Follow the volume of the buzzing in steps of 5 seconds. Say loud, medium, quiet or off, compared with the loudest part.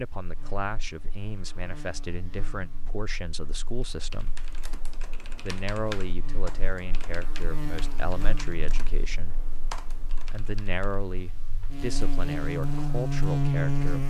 quiet, quiet, loud.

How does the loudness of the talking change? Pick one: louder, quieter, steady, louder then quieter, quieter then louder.
steady.